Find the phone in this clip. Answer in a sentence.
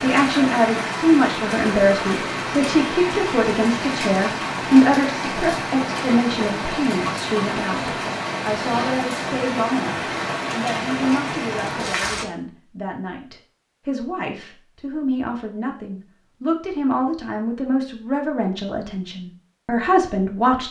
The phone can't be heard in this clip.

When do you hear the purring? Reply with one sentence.
You can't hear the purring here.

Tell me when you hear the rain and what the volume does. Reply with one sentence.
You can hear the rain from 0.0 to 12.2 s, at a steady volume.